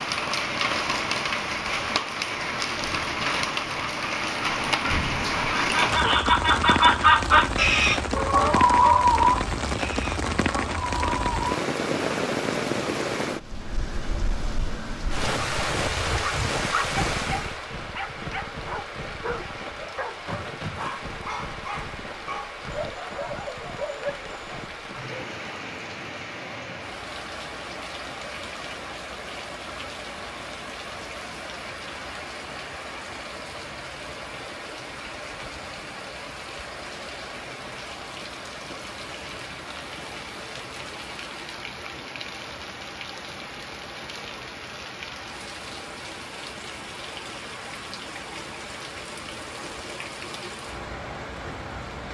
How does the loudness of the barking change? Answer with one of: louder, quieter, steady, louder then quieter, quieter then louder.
steady.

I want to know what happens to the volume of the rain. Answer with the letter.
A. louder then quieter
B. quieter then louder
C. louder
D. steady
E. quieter
E.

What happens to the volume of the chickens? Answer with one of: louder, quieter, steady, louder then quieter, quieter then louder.
quieter.